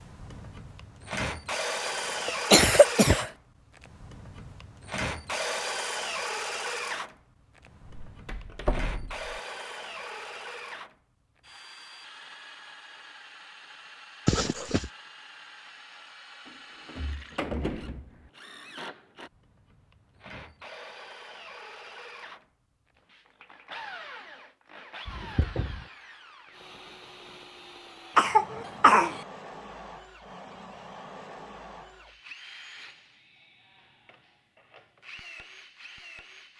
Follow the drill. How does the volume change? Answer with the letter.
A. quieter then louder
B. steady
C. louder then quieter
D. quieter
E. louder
D.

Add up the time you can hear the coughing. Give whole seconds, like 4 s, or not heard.
3 s.